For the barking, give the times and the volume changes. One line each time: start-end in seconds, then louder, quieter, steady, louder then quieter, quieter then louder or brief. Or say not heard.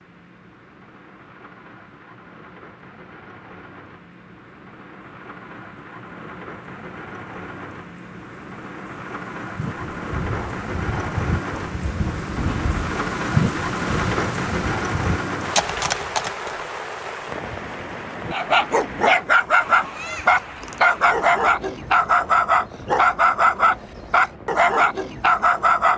18.3-25.9 steady.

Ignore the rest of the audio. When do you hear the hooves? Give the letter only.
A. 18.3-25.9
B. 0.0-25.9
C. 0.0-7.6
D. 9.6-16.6
D.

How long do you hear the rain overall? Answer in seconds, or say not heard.
26 s.